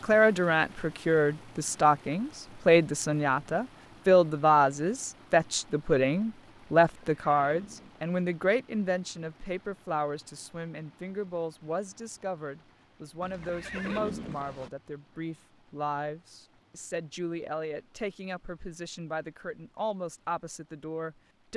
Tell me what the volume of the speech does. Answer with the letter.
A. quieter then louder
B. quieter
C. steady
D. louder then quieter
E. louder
B.